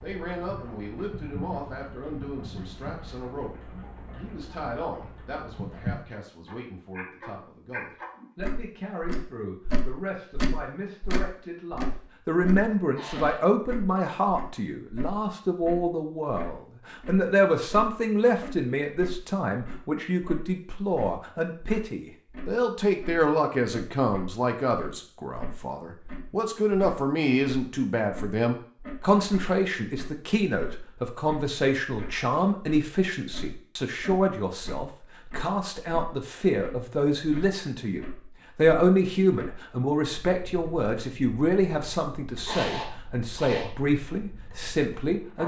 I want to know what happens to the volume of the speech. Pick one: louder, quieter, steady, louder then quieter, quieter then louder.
louder.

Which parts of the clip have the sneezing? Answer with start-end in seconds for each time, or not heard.
12.9-13.4, 42.5-43.8.